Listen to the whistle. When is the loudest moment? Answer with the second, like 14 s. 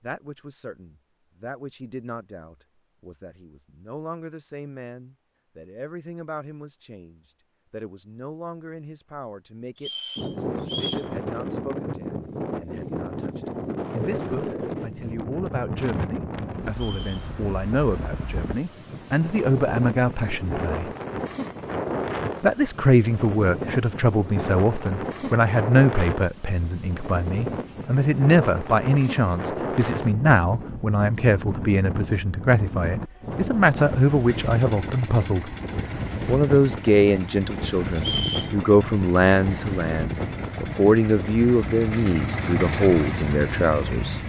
38 s.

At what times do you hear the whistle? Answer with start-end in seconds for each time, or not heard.
9.8-11.1, 16.7-17.3, 38.0-38.5.